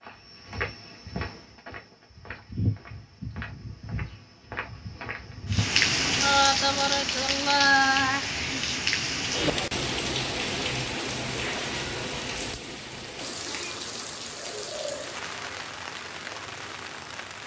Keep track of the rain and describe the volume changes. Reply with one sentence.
The volume of the rain goes down.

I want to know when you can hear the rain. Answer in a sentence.
You can hear the rain from 5.5 to 17.4 s.